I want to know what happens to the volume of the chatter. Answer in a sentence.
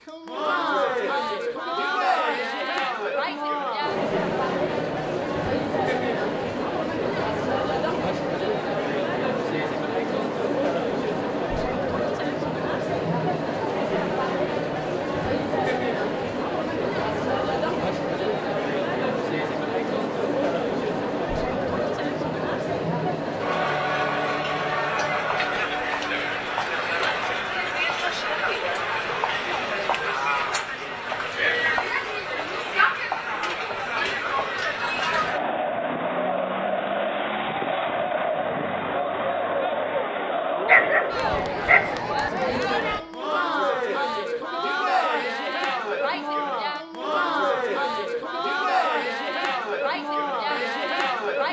The volume of the chatter stays about the same.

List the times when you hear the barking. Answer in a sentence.
The barking can be heard from 40.6 to 42.0 s.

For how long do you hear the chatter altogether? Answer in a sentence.
The chatter can be heard for 51 seconds in total.